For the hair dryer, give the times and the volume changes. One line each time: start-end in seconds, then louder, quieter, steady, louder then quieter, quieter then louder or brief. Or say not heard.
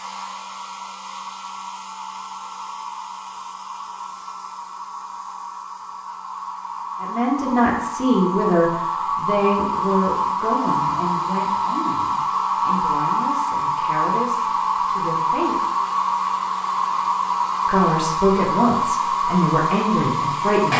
0.0-20.7 louder.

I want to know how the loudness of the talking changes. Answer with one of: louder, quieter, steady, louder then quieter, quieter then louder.
quieter then louder.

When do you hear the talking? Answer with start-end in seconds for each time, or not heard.
7.0-15.6, 17.6-20.7.